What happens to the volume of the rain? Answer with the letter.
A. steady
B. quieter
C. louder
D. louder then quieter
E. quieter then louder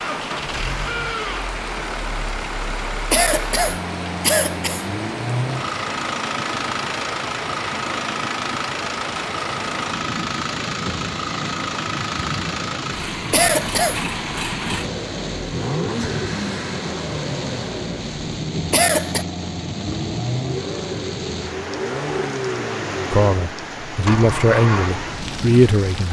A.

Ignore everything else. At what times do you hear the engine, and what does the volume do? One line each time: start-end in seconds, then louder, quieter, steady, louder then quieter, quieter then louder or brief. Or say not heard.
0.0-26.0 steady.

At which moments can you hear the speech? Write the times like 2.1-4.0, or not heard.
23.1-26.0.